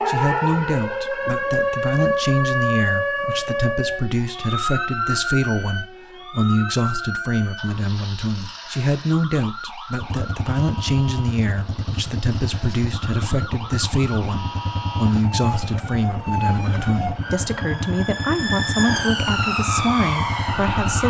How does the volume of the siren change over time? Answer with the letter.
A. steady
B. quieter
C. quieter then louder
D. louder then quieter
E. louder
C.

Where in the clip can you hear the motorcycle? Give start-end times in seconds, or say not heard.
10.0-21.0.